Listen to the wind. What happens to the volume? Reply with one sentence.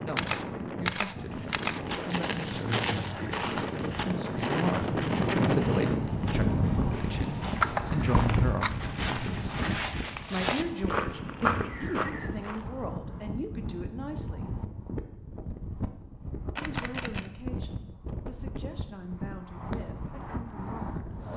The volume of the wind goes up, then down.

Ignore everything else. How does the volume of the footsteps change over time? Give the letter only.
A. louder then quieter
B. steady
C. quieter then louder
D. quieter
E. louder
C.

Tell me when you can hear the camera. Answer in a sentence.
The camera can be heard from 0.1 to 1.8 s, from 7.6 to 8.7 s and from 16.6 to 17.3 s.